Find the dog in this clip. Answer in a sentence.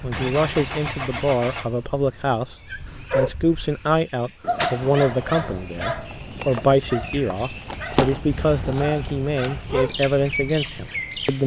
The dog can be heard from 2.7 to 10.0 s.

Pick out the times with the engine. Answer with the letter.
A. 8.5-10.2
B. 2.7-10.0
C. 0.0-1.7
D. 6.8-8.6
C.